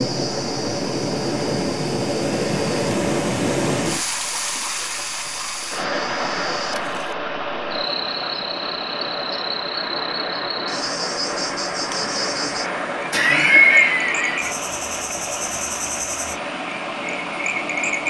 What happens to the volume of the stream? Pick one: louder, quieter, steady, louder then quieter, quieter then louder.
quieter.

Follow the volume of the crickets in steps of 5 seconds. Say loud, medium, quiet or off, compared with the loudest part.
medium, loud, loud, loud.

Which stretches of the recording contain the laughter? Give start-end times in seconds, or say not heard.
13.1-14.6.